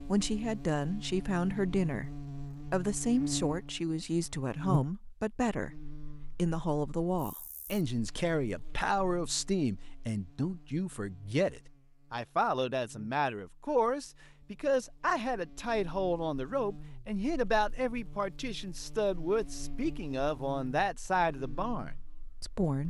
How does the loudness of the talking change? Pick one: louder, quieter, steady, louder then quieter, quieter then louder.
steady.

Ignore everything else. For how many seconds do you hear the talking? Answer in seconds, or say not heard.
23 s.